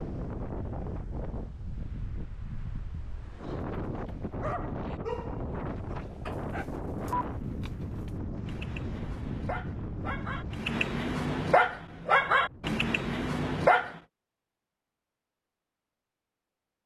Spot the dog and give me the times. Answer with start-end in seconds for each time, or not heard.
4.3-14.0.